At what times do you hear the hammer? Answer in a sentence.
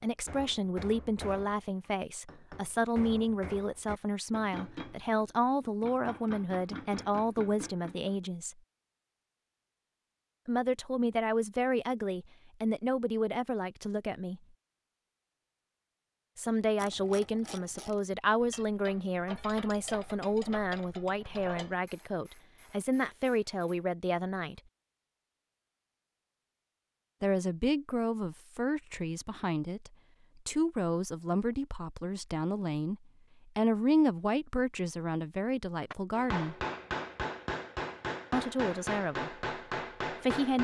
The hammer can be heard from 0.2 to 8.2 s and from 35.9 to 40.5 s.